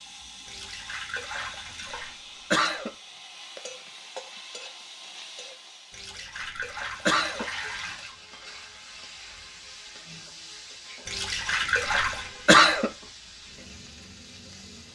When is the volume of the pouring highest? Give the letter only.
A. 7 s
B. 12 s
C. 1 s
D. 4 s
B.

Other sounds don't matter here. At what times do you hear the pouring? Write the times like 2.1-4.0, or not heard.
0.5-2.1, 5.9-8.2, 11.1-12.3.